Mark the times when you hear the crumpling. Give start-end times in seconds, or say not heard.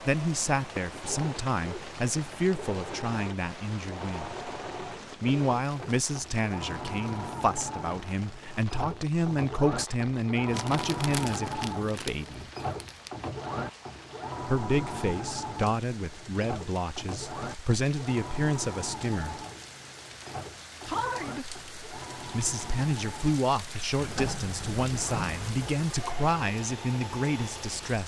10.5-13.1.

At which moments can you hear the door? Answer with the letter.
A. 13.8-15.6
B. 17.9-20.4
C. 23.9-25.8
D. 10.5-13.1
C.